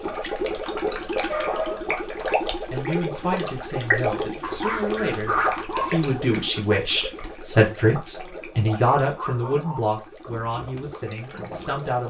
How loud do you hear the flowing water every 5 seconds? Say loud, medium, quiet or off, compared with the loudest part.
loud, medium, medium.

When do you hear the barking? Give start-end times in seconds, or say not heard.
1.2-1.9, 4.4-6.2, 8.2-9.8.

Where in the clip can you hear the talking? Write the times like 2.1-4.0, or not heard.
2.7-12.0.